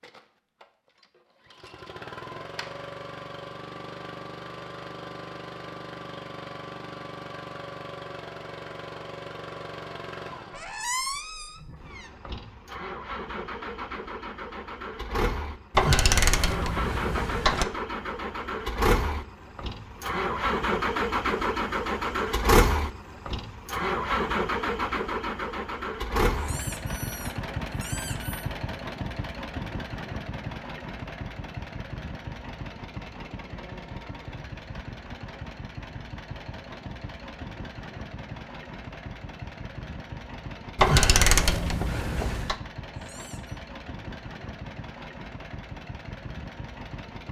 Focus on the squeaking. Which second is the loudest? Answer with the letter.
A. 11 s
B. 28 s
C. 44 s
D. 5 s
A.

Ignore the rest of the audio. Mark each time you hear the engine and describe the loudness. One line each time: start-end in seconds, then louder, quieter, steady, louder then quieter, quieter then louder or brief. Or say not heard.
0.0-47.2 louder then quieter.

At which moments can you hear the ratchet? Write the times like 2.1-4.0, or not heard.
15.8-17.6, 40.8-42.5.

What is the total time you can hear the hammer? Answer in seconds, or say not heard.
not heard.